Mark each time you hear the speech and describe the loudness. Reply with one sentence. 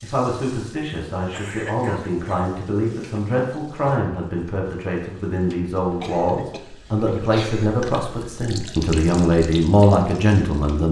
You can hear the speech from 0.0 to 10.8 s, getting louder.